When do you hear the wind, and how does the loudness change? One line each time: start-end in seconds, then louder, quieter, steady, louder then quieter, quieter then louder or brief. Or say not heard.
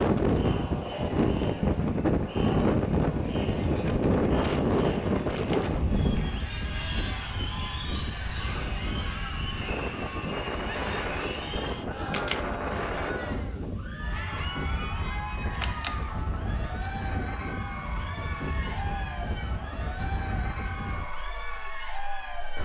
0.0-22.6 quieter.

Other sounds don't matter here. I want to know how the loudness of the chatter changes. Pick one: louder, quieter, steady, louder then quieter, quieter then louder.
steady.